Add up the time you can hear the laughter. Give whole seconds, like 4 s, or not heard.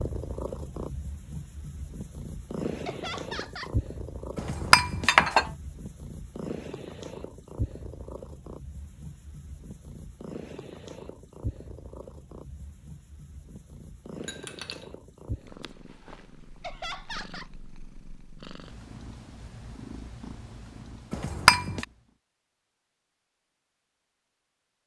2 s.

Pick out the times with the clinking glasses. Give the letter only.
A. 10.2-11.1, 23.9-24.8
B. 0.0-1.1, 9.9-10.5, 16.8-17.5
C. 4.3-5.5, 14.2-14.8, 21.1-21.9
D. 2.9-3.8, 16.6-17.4
C.